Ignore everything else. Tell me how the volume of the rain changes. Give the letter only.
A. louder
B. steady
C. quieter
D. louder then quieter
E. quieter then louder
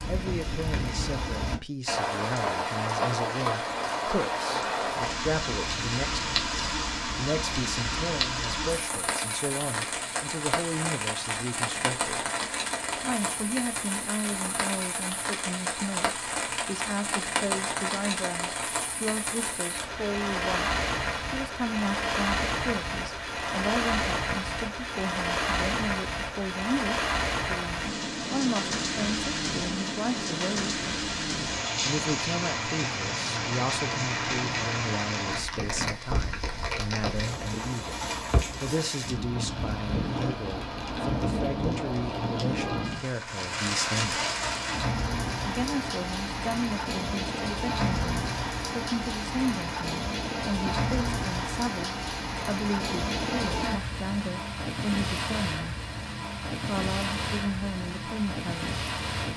B.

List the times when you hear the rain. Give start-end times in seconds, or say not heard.
0.0-59.3.